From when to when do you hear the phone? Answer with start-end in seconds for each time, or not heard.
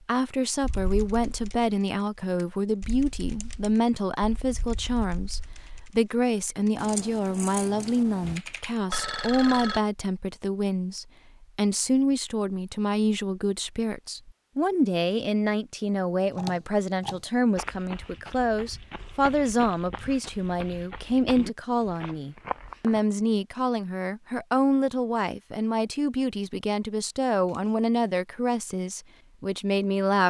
8.8-9.8.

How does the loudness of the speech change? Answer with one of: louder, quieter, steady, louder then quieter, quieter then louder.
steady.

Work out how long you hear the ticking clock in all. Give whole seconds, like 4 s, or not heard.
not heard.